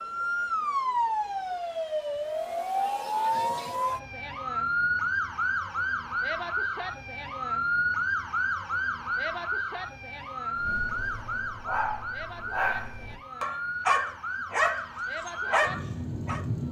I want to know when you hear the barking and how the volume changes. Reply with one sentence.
The barking can be heard from 10.6 to 16.4 s, getting louder.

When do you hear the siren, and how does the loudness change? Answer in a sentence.
You can hear the siren from 0.0 to 16.6 s, getting quieter.